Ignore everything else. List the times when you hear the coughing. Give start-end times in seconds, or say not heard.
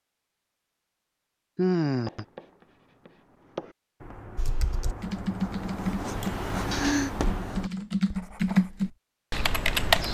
not heard.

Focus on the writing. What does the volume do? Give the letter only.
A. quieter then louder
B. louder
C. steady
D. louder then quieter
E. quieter
D.